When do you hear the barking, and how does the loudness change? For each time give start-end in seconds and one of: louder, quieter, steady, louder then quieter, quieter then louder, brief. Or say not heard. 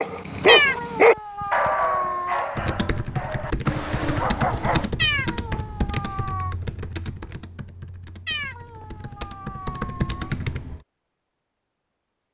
0.0-4.9 quieter then louder.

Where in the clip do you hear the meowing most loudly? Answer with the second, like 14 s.
1 s.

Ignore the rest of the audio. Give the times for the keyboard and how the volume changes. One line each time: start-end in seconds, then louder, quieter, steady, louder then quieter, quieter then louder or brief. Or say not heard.
2.5-10.8 quieter then louder.